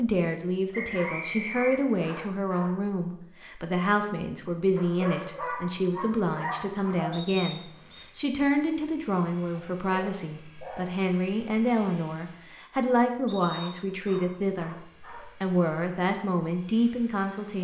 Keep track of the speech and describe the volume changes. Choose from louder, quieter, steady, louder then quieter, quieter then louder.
steady.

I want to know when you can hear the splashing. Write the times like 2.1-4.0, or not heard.
not heard.